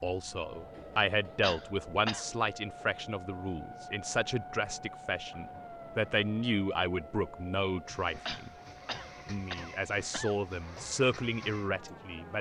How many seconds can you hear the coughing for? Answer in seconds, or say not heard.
3 s.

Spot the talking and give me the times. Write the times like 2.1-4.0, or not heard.
0.0-8.5, 9.2-12.3.